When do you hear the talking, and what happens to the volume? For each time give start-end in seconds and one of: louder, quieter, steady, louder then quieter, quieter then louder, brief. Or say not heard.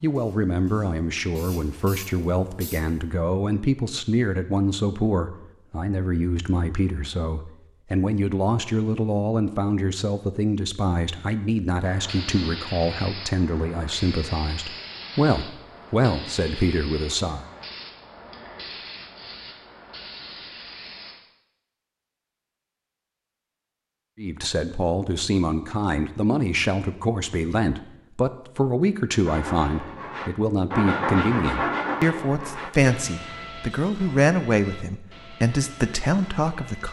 0.0-17.4 steady
24.1-36.8 steady.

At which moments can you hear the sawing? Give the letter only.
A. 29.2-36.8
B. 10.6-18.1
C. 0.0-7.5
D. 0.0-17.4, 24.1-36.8
A.